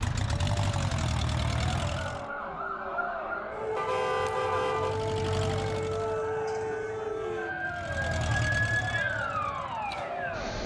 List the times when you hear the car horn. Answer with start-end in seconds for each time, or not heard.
3.8-5.0.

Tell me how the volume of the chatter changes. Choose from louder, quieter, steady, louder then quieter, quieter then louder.
steady.